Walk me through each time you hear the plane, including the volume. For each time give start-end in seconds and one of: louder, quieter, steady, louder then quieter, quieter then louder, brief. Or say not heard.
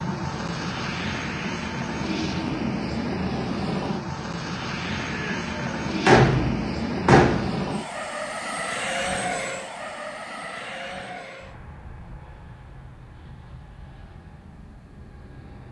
0.0-15.6 quieter.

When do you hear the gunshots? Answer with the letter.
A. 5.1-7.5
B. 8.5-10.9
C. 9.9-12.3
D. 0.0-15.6
A.